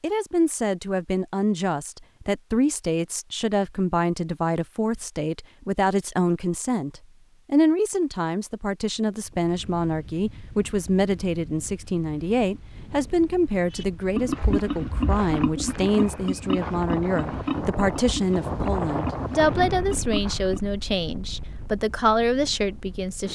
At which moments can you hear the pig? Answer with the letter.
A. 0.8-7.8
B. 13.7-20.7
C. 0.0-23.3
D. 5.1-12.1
B.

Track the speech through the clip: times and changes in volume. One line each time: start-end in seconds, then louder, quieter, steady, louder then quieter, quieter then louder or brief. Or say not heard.
0.0-23.3 steady.